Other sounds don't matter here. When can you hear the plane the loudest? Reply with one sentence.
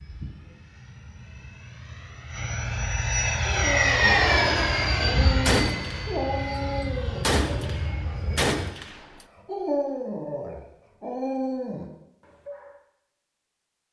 The volume of the plane peaks at 4 seconds.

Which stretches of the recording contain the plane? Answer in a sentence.
The plane can be heard from 0.0 to 8.7 s.